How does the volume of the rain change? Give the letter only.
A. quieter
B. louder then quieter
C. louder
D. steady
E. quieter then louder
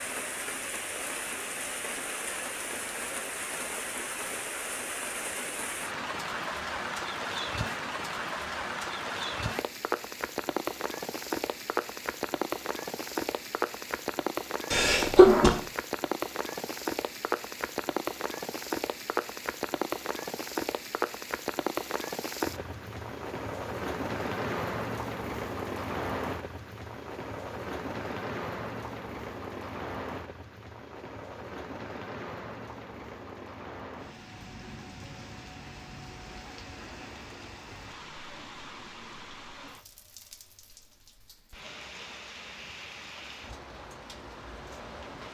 A.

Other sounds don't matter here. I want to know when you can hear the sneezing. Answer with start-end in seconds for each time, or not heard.
14.7-15.6.